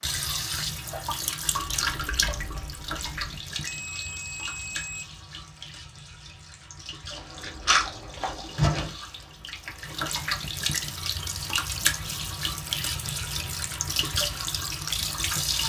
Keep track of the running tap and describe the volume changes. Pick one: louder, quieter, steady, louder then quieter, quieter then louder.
quieter then louder.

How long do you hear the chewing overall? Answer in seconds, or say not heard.
5 s.